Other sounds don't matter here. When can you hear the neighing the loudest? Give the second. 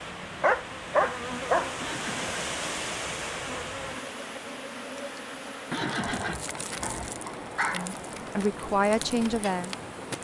6 s.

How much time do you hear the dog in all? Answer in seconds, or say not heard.
3 s.